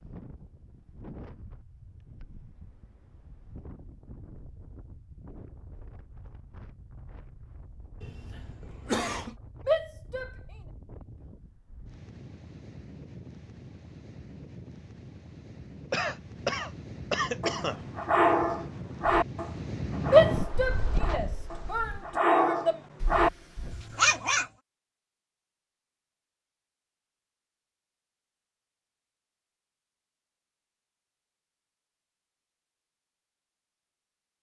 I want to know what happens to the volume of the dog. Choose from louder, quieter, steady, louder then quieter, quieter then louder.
quieter then louder.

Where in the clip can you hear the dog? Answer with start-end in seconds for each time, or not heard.
17.4-24.4.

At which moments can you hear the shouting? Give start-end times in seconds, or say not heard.
9.7-10.3, 20.1-22.8.